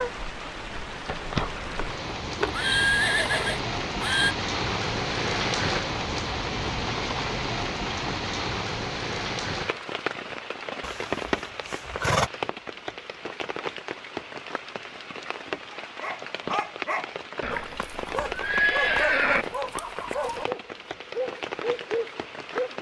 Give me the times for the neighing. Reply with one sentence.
The neighing can be heard from 1.6 to 4.3 s, from 10.8 to 12.3 s and from 17.4 to 19.4 s.